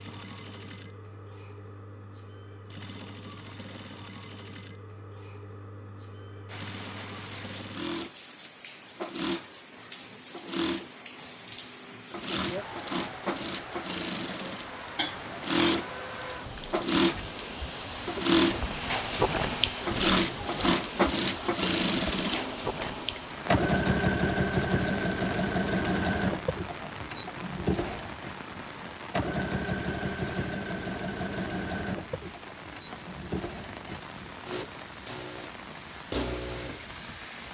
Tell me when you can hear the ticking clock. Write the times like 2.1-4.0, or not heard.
not heard.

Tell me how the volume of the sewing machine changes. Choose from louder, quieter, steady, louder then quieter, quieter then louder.
louder then quieter.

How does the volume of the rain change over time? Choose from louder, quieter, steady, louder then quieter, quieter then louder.
louder then quieter.